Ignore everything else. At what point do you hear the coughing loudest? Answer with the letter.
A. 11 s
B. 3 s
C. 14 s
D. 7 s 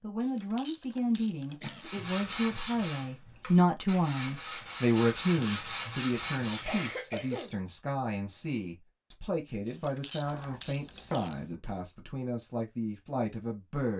D.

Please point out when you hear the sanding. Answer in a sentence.
You can hear the sanding from 1.8 to 7.0 s.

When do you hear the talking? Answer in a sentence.
The talking can be heard from 0.0 to 13.9 s.